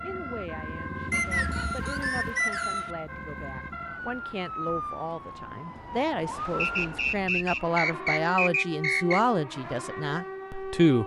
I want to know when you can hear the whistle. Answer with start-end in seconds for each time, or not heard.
1.1-2.9, 6.5-9.2.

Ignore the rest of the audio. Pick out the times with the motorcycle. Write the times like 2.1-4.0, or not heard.
0.0-4.0.